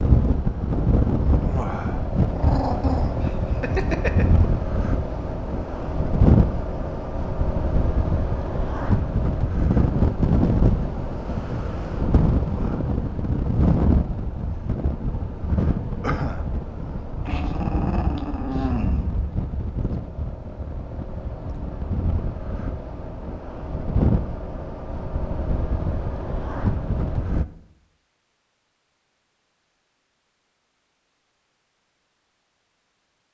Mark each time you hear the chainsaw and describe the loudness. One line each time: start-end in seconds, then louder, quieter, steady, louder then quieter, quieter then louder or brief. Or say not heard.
not heard.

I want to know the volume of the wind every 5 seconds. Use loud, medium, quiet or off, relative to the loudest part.
loud, loud, loud, medium, medium, medium, off.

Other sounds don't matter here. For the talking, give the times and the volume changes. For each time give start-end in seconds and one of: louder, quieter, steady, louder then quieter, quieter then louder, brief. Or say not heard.
not heard.